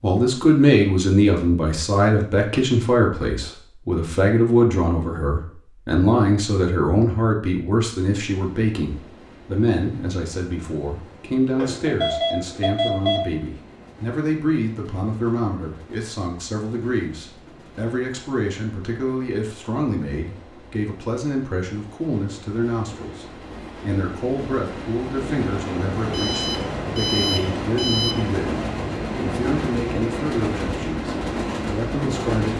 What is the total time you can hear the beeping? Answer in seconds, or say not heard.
4 s.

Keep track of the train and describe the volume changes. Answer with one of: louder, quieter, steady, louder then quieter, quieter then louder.
louder.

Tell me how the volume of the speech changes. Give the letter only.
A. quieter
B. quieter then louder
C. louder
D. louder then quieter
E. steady
A.